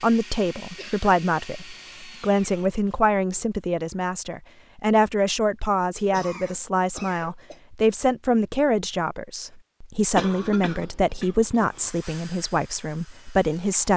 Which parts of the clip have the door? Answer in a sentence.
You can't hear the door here.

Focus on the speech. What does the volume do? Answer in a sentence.
The loudness of the speech stays about the same.